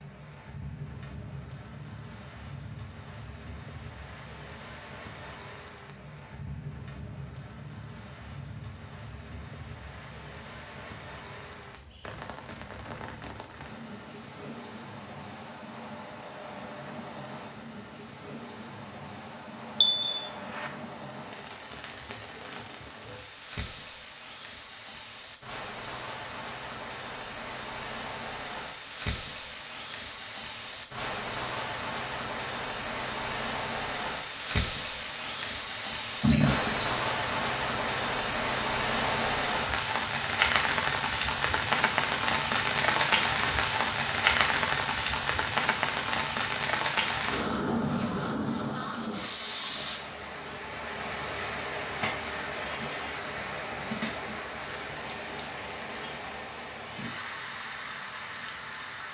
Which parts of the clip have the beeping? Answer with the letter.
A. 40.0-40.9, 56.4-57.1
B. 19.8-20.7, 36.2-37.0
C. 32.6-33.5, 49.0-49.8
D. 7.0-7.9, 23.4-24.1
B.